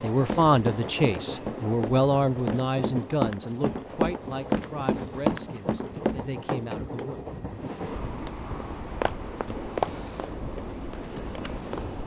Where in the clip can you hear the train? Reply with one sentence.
The train can be heard from 0.0 to 12.0 s.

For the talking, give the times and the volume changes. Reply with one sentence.
You can hear the talking from 0.0 to 7.2 s, getting quieter.